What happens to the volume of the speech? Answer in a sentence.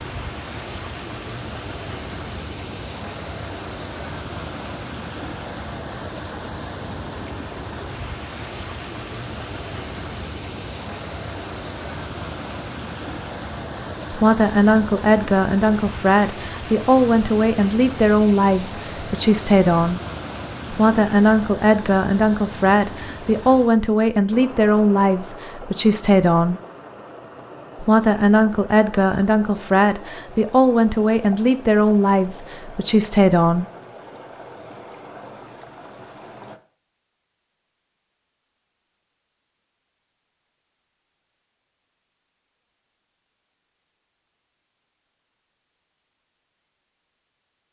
The volume of the speech stays about the same.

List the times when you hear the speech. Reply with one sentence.
The speech can be heard from 14.1 to 20.0 s, from 20.7 to 26.6 s and from 27.8 to 33.6 s.